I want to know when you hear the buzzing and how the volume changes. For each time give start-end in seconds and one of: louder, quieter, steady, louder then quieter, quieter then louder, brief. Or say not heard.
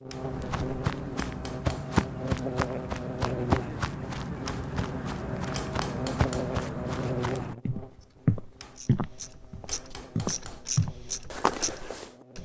0.0-12.4 quieter.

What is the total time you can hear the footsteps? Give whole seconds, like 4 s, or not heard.
12 s.